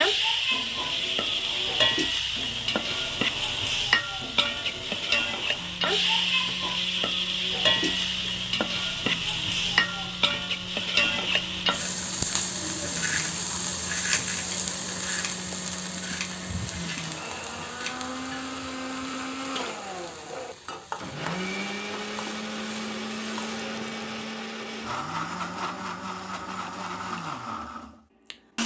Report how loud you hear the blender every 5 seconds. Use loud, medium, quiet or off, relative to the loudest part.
medium, medium, medium, loud, loud, loud.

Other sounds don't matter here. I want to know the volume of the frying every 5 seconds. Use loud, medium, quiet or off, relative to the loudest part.
loud, loud, loud, medium, quiet, off.